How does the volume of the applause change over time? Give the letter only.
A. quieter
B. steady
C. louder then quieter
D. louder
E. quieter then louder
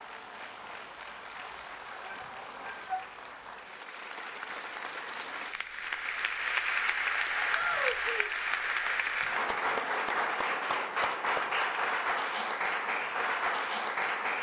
D.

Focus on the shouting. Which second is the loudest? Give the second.
8 s.